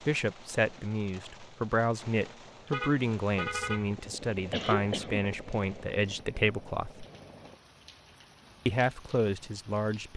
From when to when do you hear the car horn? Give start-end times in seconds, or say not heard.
2.6-3.9.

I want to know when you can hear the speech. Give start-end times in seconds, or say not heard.
0.1-7.0, 8.7-10.1.